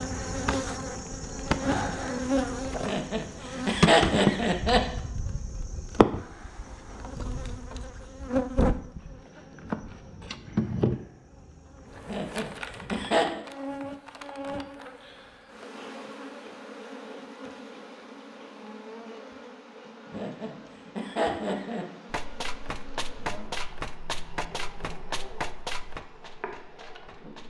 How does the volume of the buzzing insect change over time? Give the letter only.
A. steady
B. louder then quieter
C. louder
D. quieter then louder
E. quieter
E.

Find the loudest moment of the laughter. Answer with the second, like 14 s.
4 s.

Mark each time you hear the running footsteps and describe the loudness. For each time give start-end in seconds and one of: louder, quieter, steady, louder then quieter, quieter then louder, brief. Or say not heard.
22.1-27.4 quieter.